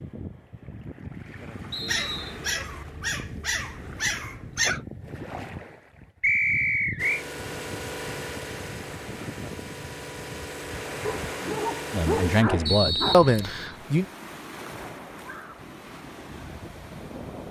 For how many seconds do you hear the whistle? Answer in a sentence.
You can hear the whistle for 3 seconds altogether.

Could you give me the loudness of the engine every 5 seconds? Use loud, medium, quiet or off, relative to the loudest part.
off, loud, loud, off.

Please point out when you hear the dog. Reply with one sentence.
You can hear the dog from 1.9 to 4.8 s and from 11.0 to 13.3 s.